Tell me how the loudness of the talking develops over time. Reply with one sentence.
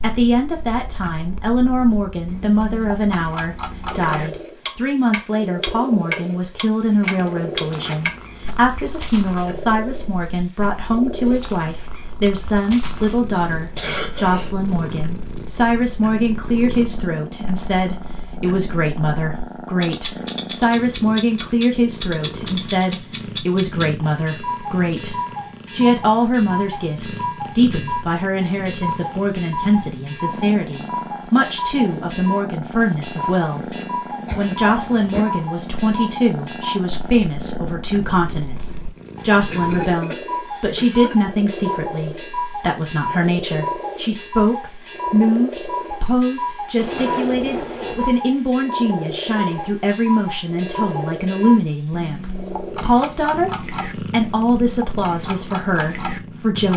The loudness of the talking stays about the same.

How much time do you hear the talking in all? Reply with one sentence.
The talking can be heard for 56 seconds in total.